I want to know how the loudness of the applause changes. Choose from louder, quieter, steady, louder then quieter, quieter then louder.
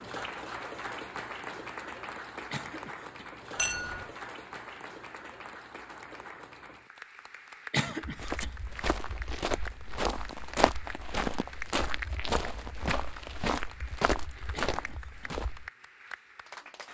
quieter.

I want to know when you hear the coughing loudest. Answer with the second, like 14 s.
8 s.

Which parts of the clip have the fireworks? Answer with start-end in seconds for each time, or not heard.
not heard.